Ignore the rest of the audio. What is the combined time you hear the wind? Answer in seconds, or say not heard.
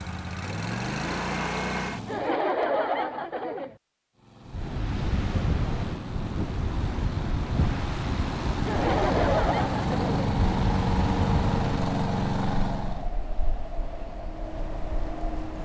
11 s.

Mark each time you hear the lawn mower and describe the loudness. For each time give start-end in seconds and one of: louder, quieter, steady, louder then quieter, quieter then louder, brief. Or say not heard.
0.0-2.4 brief
4.2-13.1 louder.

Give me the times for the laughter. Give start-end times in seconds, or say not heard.
2.0-3.8, 8.7-10.3.